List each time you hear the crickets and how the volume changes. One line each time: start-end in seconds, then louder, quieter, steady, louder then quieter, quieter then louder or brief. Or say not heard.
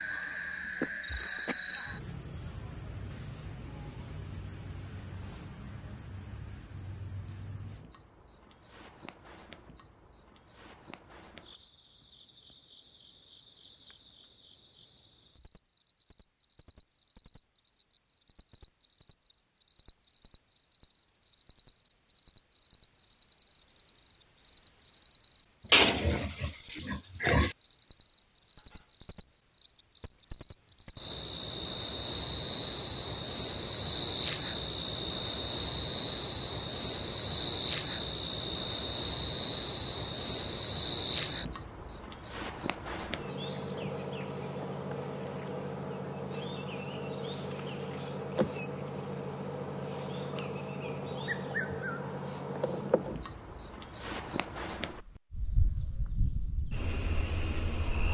0.0-58.0 louder.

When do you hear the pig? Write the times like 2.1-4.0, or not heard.
25.7-27.6.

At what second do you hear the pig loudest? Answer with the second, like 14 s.
26 s.